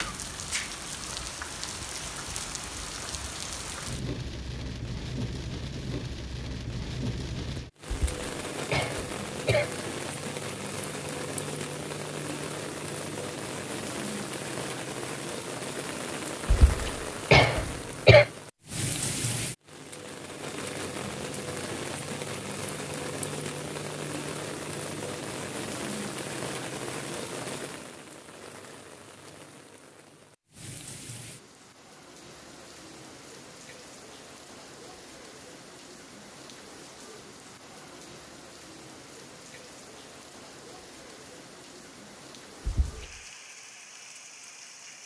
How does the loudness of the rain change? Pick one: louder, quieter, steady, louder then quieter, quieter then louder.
quieter.